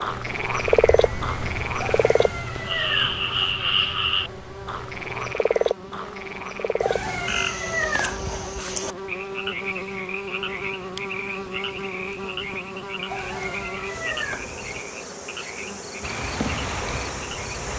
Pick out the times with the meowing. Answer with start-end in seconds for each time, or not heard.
1.8-3.5, 6.8-8.6, 13.1-14.8.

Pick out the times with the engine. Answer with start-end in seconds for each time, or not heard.
0.0-5.3, 16.0-17.7.